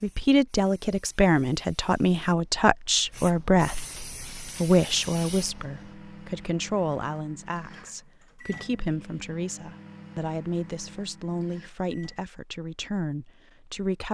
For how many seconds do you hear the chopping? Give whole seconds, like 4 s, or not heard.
not heard.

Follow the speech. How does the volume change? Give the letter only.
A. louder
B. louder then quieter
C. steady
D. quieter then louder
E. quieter
E.